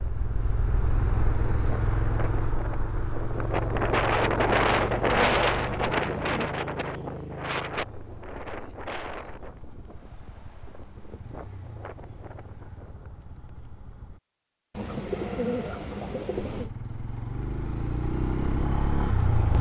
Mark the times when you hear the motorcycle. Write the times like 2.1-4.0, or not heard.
0.0-14.2, 16.4-19.5.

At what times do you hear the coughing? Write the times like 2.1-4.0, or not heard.
not heard.